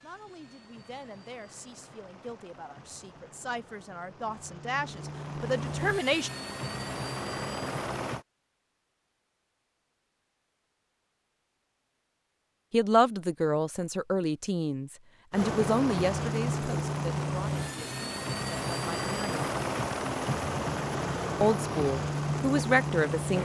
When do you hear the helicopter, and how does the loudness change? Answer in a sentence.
You can hear the helicopter from 0.0 to 8.2 s, getting louder; and from 15.3 to 23.3 s, at a steady volume.